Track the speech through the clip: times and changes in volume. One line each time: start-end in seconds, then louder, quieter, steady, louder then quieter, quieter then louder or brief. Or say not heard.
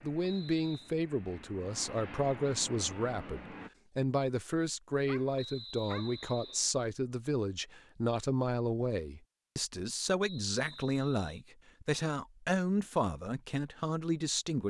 0.0-14.6 steady.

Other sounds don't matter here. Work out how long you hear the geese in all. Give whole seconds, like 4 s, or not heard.
not heard.